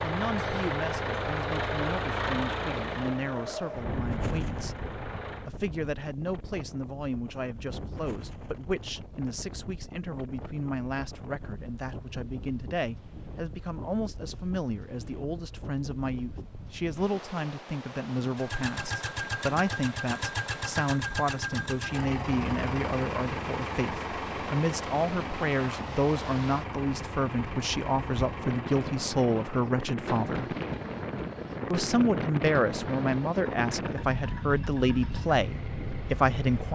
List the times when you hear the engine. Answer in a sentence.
The engine can be heard from 0.0 to 5.5 s and from 18.4 to 36.6 s.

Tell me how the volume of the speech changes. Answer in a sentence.
The volume of the speech goes up.